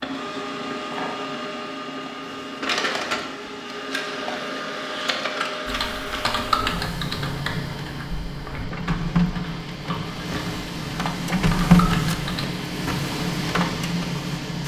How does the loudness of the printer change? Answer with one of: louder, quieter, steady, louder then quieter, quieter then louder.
louder.